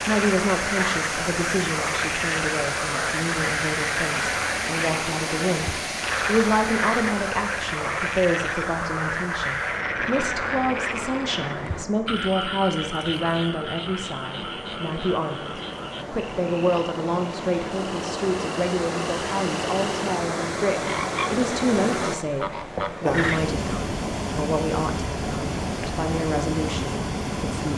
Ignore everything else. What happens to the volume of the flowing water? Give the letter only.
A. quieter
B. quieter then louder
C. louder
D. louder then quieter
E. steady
B.